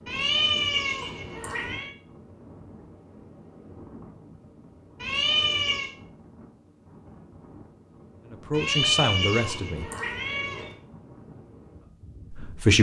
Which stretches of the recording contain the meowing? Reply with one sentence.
You can hear the meowing from 0.1 to 1.9 s, from 5.0 to 5.9 s and from 8.5 to 10.8 s.